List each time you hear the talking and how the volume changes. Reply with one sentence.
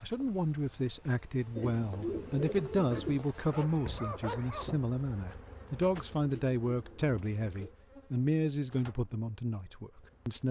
You can hear the talking from 0.0 to 10.4 s, at a steady volume.